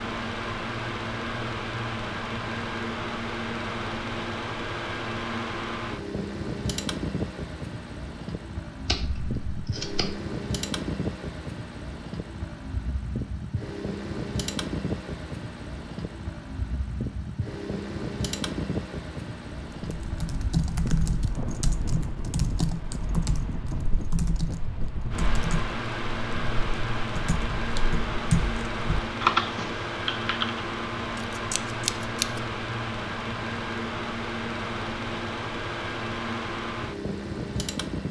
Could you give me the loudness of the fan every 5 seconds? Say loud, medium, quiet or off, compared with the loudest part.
loud, loud, loud, loud, medium, loud, loud, loud.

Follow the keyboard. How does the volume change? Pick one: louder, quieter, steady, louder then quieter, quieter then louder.
quieter then louder.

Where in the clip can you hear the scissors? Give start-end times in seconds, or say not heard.
8.8-10.2, 31.2-32.5.